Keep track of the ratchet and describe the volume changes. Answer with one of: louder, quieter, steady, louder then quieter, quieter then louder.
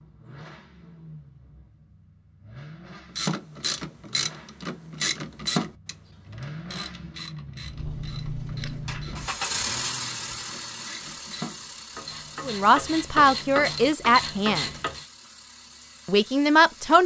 quieter then louder.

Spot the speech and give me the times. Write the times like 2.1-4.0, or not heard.
12.4-14.7, 16.1-17.0.